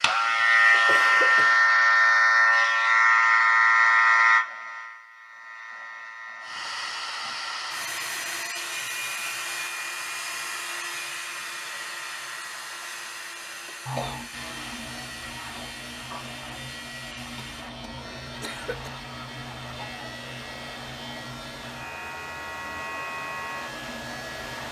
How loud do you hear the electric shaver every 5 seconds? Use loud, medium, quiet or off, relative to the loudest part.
loud, quiet, quiet, quiet, quiet.